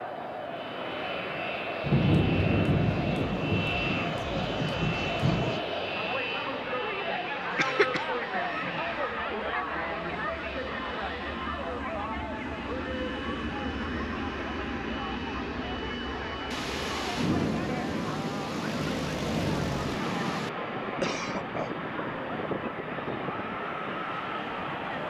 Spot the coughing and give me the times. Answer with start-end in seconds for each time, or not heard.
7.3-8.2, 20.9-21.7.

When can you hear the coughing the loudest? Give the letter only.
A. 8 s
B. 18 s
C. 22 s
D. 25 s
A.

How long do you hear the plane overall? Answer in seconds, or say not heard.
25 s.